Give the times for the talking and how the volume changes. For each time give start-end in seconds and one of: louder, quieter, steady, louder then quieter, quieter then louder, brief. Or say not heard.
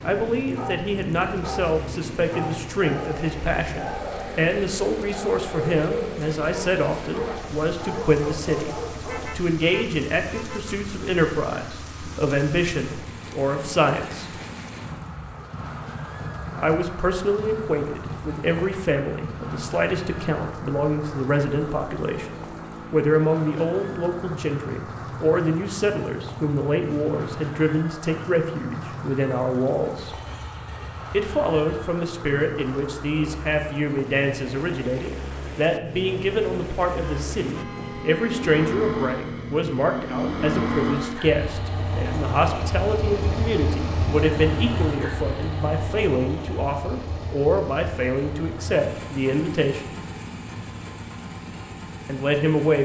0.0-14.3 steady
16.6-30.2 steady
31.1-50.0 steady
52.0-52.8 brief.